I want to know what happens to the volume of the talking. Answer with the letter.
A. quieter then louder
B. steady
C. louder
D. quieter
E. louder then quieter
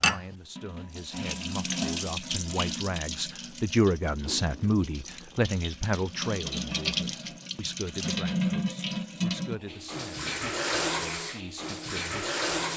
E.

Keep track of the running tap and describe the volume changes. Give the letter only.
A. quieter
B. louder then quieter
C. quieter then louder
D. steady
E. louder
C.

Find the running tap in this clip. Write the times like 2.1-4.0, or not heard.
0.0-12.7.